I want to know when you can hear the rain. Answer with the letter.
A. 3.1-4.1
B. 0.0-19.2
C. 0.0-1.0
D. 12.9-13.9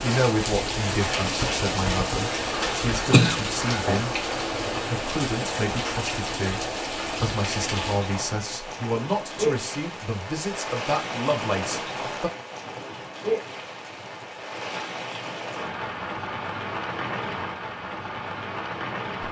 B.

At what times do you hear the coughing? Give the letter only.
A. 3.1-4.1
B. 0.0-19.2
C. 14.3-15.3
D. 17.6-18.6
A.